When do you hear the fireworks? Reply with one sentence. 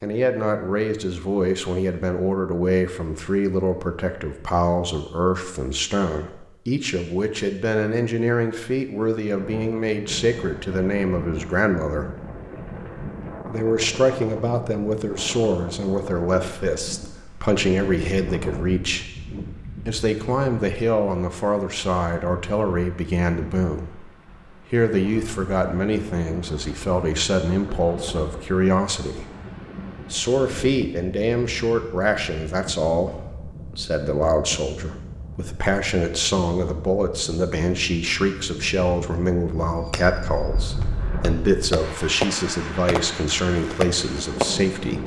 You can hear the fireworks from 39.9 to 44.6 s.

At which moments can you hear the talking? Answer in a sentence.
The talking can be heard from 0.0 to 12.1 s, from 13.4 to 19.1 s, from 19.9 to 24.1 s, from 24.7 to 29.3 s and from 30.1 to 45.0 s.